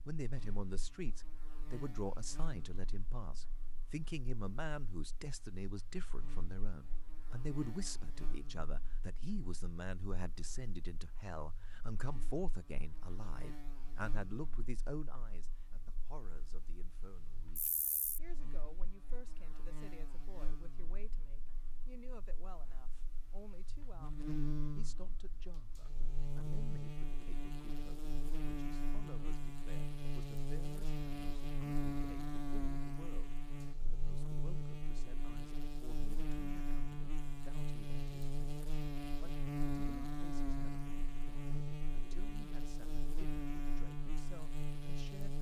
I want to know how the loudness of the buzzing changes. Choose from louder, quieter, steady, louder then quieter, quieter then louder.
louder.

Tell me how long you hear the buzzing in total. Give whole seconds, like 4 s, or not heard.
45 s.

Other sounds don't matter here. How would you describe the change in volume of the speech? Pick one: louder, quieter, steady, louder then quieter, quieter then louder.
quieter.